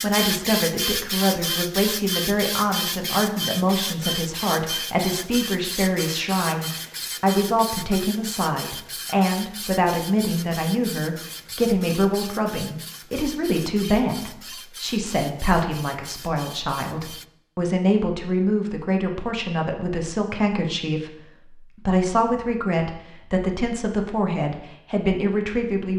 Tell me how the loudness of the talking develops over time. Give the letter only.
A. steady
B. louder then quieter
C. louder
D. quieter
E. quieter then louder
A.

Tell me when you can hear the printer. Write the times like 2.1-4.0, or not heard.
0.0-17.2.